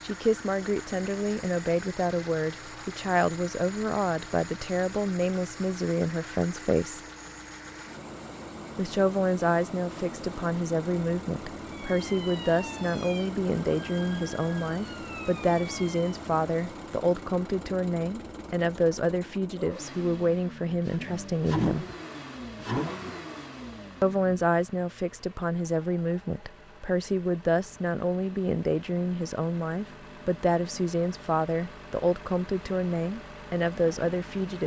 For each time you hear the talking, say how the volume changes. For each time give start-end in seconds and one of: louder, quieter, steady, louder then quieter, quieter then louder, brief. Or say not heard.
0.0-7.0 steady
8.8-21.9 steady
24.0-34.6 steady.